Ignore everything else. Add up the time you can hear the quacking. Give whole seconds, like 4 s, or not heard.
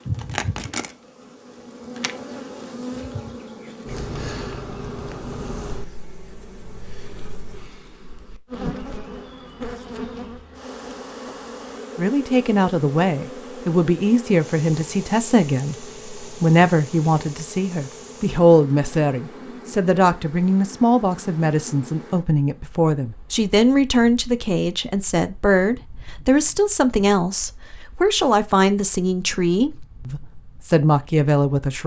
not heard.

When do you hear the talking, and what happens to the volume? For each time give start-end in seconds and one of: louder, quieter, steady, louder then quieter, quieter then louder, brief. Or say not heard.
11.9-31.8 steady.